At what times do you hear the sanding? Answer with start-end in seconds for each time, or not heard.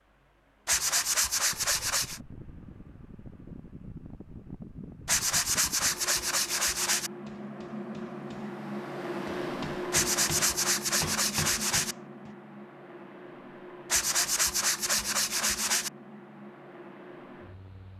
0.7-2.2, 5.0-7.1, 9.9-11.9, 13.9-15.9.